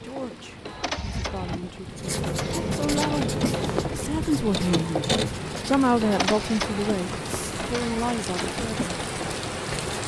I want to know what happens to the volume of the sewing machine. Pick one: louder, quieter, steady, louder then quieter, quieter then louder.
louder then quieter.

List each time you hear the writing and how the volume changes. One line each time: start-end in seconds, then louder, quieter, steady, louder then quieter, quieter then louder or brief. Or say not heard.
1.9-10.0 quieter.